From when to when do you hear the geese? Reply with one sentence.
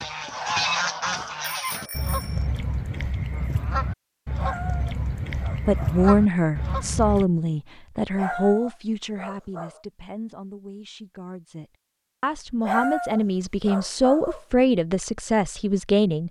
You can hear the geese from 0.0 to 7.2 s.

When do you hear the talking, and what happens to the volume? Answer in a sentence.
You can hear the talking from 5.7 to 16.2 s, getting quieter then louder.